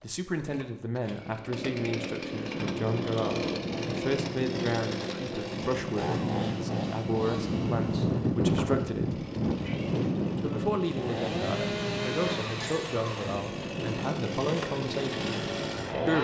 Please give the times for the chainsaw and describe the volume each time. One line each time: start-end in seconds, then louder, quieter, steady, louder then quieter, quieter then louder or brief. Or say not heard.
0.0-16.2 quieter then louder.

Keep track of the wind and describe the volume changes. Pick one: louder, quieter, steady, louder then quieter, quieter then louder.
louder then quieter.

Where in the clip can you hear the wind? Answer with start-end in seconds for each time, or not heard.
2.5-16.2.